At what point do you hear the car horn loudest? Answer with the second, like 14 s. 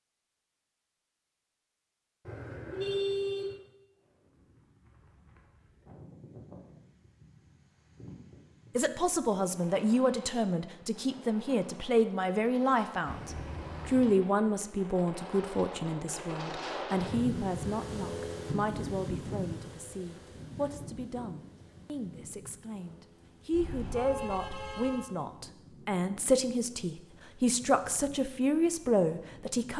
3 s.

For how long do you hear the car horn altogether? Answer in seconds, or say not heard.
4 s.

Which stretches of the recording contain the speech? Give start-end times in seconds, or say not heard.
8.8-29.7.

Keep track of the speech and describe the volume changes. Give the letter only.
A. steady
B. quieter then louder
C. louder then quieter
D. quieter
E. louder
B.